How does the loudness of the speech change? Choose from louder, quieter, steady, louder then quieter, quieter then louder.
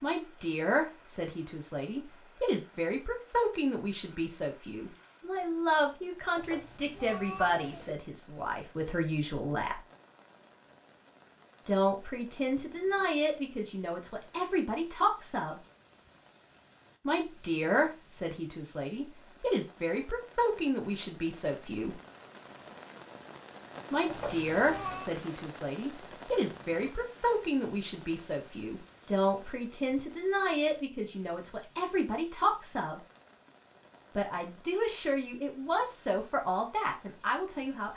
steady.